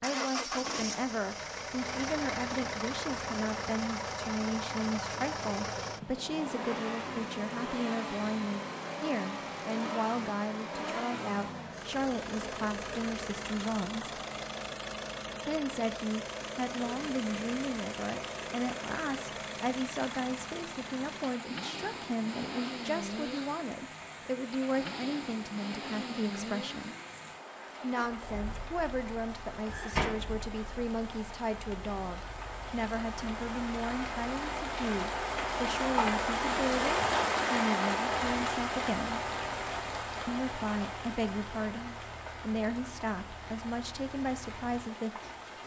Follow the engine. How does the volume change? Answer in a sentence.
The loudness of the engine goes down.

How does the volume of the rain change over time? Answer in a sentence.
The loudness of the rain goes up, then down.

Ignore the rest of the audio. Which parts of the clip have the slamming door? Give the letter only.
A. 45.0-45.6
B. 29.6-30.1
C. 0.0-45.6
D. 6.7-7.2
B.